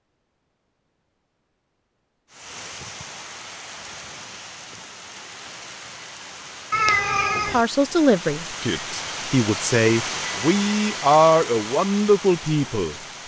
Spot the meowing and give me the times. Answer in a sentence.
The meowing can be heard from 6.7 to 7.7 s.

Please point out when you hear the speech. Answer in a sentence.
The speech can be heard from 7.3 to 12.9 s.